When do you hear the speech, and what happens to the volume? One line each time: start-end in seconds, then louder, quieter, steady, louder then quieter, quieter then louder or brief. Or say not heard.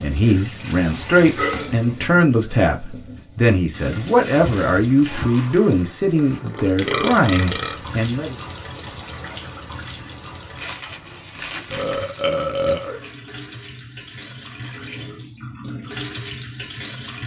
0.0-8.3 steady.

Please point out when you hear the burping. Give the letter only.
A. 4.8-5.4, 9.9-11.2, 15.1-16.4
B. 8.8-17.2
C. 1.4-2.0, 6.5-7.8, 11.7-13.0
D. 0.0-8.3
C.